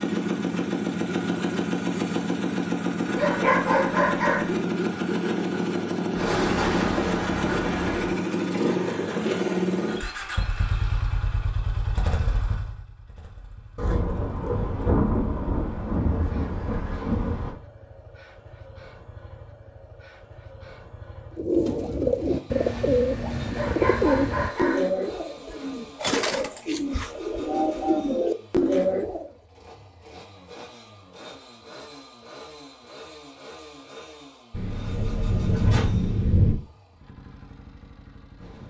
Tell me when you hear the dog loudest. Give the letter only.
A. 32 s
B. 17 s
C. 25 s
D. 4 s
D.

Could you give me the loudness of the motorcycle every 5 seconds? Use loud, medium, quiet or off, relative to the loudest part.
loud, loud, medium, quiet, quiet, quiet, quiet, quiet.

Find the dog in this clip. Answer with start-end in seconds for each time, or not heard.
3.1-4.5, 23.5-24.9.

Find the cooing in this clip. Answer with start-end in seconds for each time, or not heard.
21.4-29.3.